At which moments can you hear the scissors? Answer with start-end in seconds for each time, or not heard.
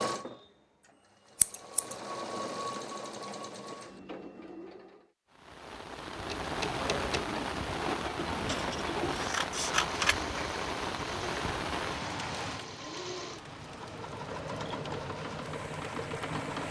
1.4-1.9, 8.4-10.2.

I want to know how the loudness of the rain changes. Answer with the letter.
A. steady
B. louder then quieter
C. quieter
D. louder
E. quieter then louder
C.